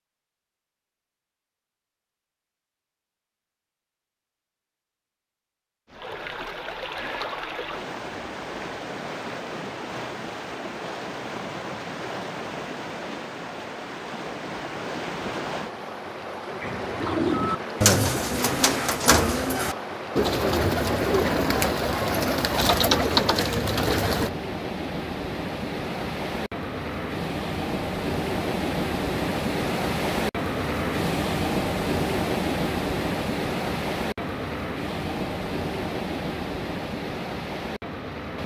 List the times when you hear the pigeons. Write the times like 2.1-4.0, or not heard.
16.6-24.3.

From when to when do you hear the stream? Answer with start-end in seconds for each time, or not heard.
5.9-38.4.